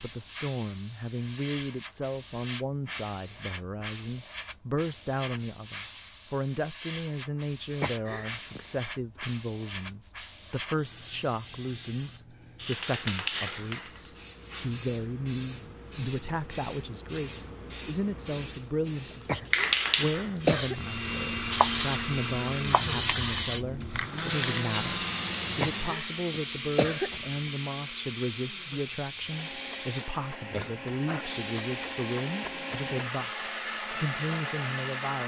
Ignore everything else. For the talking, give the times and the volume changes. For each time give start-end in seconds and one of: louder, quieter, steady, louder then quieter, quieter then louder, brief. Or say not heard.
0.0-35.2 steady.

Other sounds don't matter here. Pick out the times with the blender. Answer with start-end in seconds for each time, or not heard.
20.6-35.2.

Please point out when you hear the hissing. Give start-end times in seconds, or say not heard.
0.0-35.2.